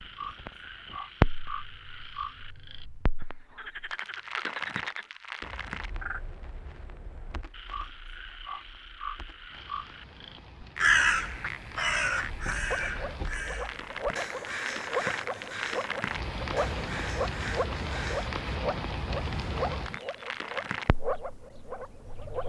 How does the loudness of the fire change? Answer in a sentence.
The volume of the fire goes down, then up.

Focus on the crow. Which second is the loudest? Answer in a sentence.
The volume of the crow peaks at 11 seconds.